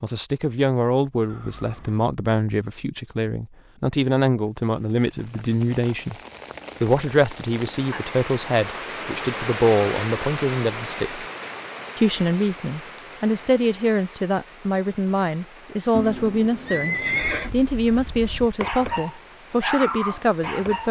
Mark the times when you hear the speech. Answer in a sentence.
The speech can be heard from 0.0 to 6.2 s, from 6.8 to 11.2 s and from 11.9 to 20.8 s.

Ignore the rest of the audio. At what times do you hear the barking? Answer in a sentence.
You can hear the barking from 17.2 to 20.8 s.